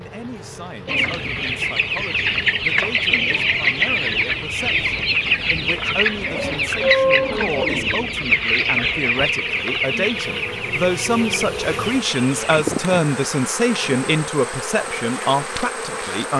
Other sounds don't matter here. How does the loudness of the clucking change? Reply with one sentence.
The volume of the clucking goes down.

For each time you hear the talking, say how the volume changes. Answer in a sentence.
You can hear the talking from 0.0 to 16.3 s, getting louder.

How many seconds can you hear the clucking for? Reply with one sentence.
The clucking can be heard for 12 seconds in total.